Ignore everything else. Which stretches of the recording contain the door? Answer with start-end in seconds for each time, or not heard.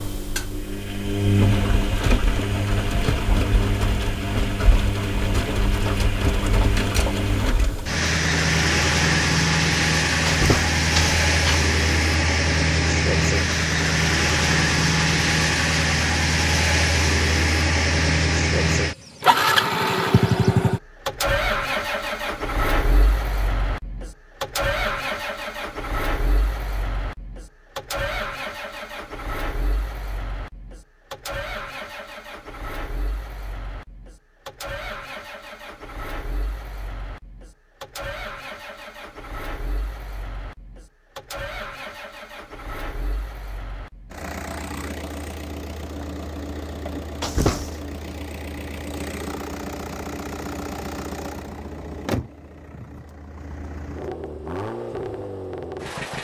10.2-11.7, 47.2-47.8.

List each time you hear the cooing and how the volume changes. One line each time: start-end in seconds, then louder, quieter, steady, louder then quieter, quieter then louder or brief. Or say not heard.
not heard.